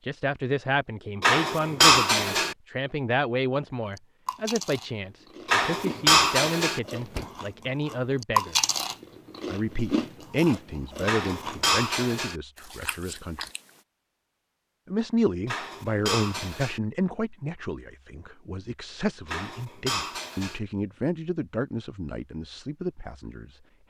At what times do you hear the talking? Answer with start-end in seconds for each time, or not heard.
0.1-8.6, 9.4-13.4, 14.8-23.8.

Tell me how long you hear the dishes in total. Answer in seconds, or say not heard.
7 s.